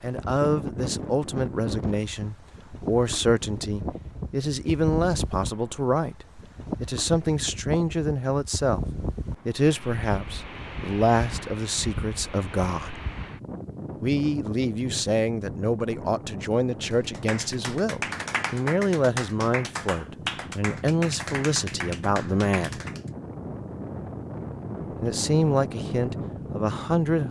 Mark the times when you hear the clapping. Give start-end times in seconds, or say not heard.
16.9-23.1.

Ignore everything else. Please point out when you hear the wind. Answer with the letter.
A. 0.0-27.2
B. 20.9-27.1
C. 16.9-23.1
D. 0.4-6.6
A.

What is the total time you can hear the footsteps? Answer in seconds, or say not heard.
not heard.